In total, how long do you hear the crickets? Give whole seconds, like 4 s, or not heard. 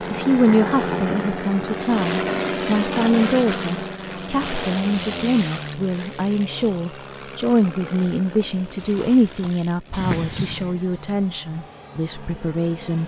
not heard.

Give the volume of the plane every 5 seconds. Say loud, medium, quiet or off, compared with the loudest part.
loud, medium, quiet.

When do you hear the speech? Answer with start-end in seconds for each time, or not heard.
0.1-13.0.